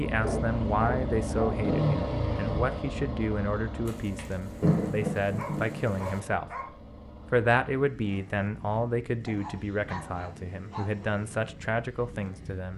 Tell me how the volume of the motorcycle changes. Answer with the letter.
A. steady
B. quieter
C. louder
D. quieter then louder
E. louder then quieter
B.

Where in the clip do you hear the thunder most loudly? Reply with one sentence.
The volume of the thunder peaks at 5 seconds.